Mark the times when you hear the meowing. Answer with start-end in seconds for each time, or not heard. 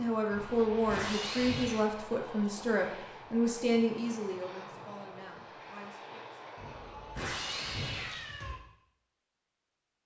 0.3-1.9, 6.5-8.6.